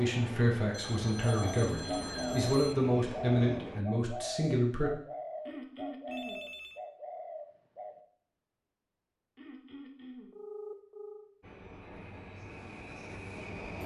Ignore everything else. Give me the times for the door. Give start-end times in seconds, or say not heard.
not heard.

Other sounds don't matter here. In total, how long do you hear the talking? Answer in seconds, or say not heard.
5 s.